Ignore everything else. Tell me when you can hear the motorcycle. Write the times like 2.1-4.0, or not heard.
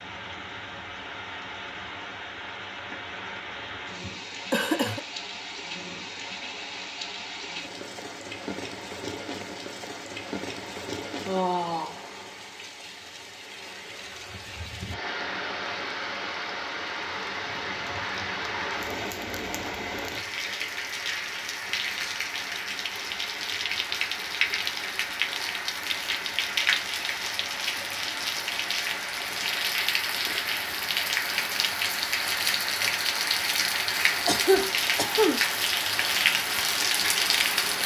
not heard.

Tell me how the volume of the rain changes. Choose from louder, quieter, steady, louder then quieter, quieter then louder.
louder.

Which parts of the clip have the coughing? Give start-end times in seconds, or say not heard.
4.0-5.0, 34.2-35.5.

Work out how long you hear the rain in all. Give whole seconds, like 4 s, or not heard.
38 s.